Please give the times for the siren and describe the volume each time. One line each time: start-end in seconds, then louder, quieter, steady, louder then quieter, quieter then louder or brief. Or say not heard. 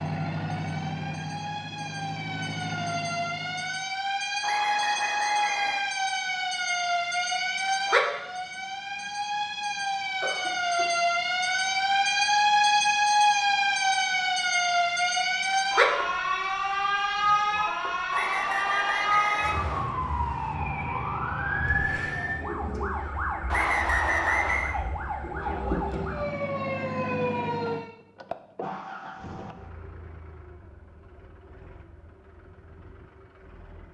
0.0-27.9 louder then quieter.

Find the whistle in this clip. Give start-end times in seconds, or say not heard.
4.4-5.8, 18.1-19.9, 23.5-24.8.